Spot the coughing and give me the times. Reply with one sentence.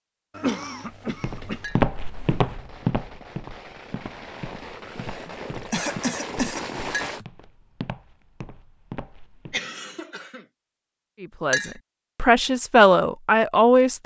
The coughing can be heard from 0.3 to 1.6 s, from 5.0 to 7.2 s and from 9.5 to 10.4 s.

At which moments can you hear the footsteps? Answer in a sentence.
The footsteps can be heard from 1.1 to 9.6 s.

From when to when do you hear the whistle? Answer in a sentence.
The whistle can't be heard in this clip.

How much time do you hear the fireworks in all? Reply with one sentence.
You can hear the fireworks for 6 seconds altogether.